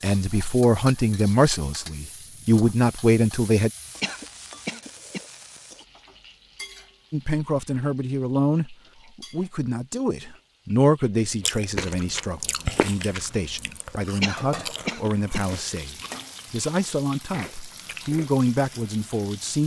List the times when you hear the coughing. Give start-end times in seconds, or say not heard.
4.0-5.2, 14.2-15.6.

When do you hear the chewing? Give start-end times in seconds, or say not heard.
11.4-18.3.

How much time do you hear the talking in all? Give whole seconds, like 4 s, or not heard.
16 s.